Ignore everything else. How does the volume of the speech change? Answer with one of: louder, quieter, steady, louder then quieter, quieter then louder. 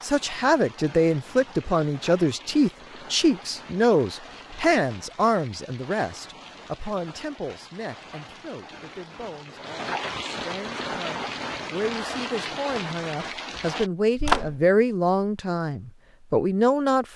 quieter then louder.